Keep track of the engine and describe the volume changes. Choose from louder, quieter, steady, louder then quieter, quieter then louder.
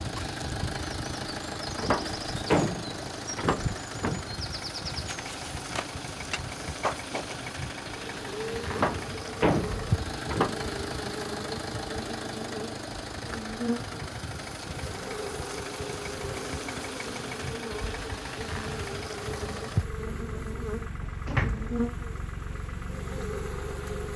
steady.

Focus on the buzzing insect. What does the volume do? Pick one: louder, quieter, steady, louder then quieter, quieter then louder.
steady.